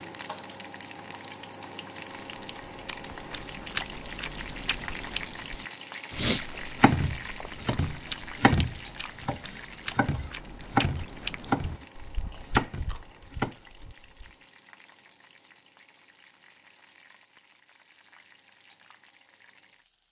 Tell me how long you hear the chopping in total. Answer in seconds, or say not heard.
6 s.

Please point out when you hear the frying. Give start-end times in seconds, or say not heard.
0.0-20.0.